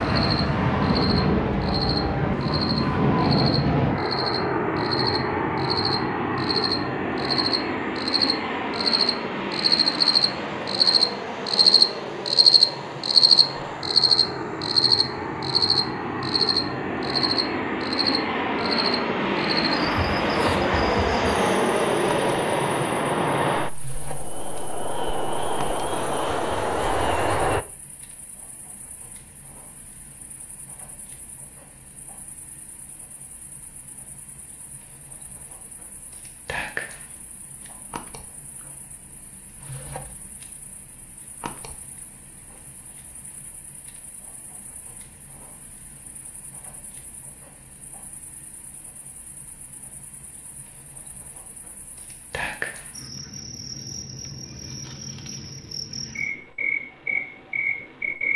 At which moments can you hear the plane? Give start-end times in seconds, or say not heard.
0.0-27.6.